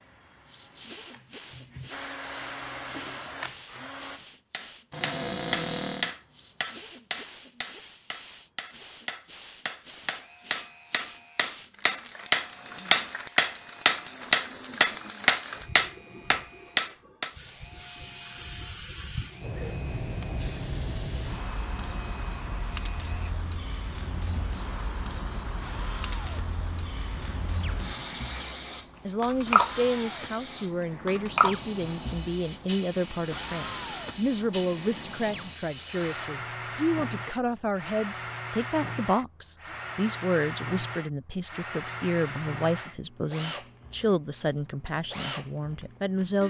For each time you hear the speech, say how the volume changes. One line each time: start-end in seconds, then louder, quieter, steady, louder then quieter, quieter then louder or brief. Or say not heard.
29.1-46.4 steady.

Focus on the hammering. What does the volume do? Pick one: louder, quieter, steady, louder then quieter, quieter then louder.
quieter then louder.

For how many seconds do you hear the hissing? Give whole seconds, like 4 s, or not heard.
36 s.